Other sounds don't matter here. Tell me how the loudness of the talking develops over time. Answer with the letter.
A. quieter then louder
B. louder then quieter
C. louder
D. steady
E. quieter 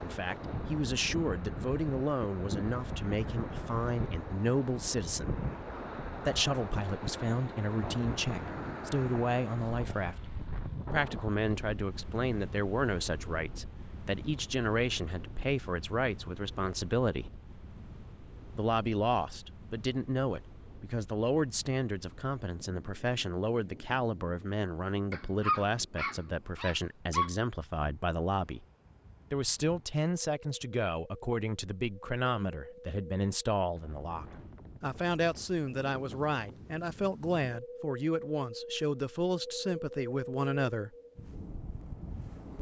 D.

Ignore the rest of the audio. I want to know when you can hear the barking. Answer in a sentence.
The barking can be heard from 25.1 to 27.3 s.